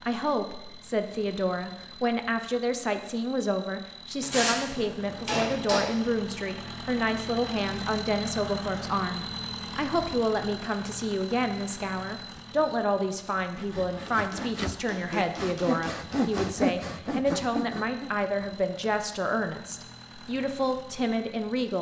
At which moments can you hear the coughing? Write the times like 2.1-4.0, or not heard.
not heard.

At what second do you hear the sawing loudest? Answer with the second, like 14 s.
17 s.